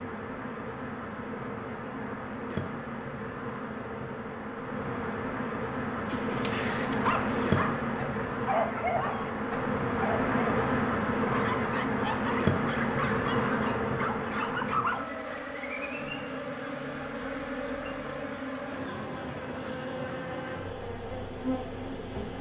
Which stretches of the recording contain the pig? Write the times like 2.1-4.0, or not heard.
not heard.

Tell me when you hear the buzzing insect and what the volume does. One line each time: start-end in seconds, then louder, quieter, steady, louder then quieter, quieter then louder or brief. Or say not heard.
0.0-22.3 louder then quieter.